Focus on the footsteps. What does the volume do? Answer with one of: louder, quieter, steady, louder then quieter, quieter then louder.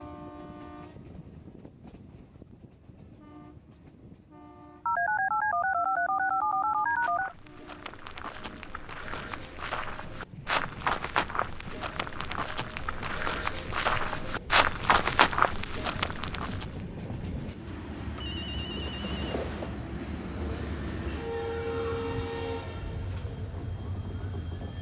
louder.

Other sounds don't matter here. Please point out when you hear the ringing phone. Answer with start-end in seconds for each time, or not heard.
4.8-7.3, 18.1-19.7.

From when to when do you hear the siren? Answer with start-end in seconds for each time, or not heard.
20.1-24.7.